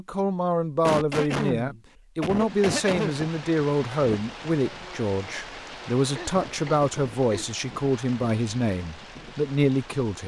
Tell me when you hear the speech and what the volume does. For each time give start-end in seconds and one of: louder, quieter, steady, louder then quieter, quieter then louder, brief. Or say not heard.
0.0-10.2 steady.